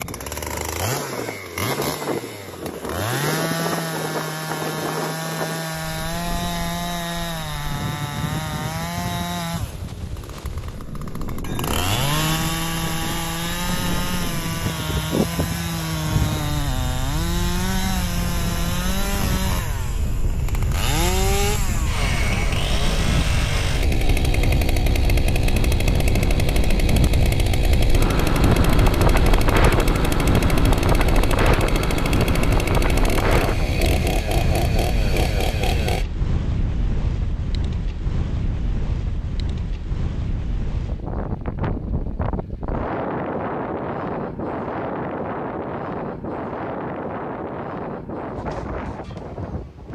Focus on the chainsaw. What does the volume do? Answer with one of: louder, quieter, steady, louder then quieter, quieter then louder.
steady.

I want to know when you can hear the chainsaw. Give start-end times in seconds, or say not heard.
0.0-36.0.